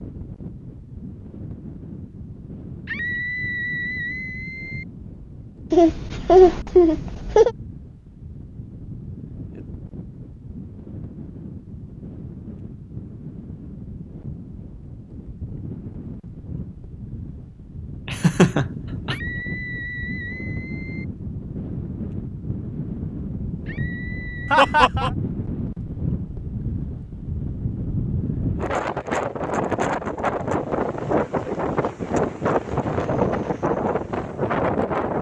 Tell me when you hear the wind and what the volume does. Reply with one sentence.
You can hear the wind from 0.0 to 35.1 s, getting louder.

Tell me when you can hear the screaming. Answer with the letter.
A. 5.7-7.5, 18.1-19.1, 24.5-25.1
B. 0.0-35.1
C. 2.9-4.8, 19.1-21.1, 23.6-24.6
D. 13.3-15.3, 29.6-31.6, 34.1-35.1
C.